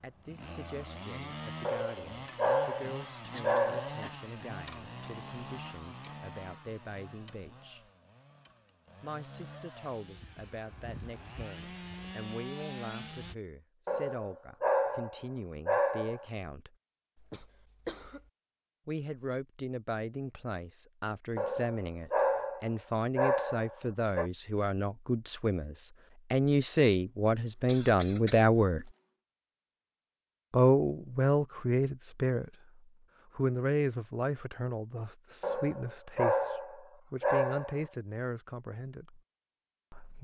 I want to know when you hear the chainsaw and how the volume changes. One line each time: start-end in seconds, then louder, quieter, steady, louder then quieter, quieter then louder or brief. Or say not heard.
0.0-13.3 quieter then louder.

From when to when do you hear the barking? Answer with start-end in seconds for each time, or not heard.
1.6-4.0, 13.8-16.2, 21.4-24.3, 35.4-37.9.